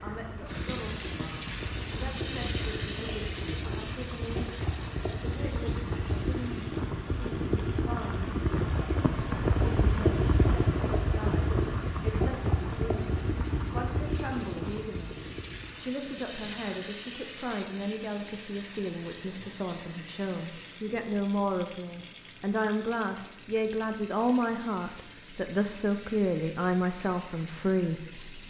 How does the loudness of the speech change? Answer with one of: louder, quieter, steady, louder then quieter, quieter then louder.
louder.